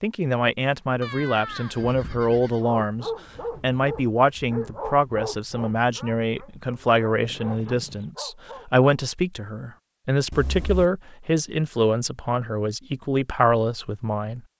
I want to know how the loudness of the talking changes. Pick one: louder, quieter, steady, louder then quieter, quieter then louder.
steady.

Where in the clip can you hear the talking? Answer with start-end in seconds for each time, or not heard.
0.0-14.4.